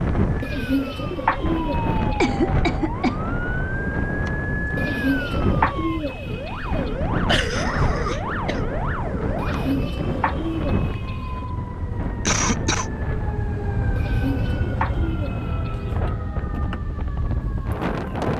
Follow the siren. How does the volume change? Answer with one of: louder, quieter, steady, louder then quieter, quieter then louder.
steady.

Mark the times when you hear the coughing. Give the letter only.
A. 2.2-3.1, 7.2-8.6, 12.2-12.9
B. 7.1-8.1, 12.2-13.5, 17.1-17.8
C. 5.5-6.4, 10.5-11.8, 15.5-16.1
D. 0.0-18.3
A.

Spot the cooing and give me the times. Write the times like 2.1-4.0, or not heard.
0.4-2.2, 4.8-7.0, 9.3-11.4, 13.9-16.0.